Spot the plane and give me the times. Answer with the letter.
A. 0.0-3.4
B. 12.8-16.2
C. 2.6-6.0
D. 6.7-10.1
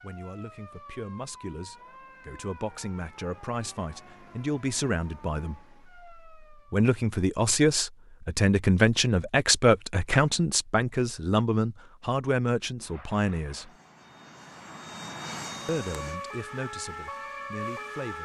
B.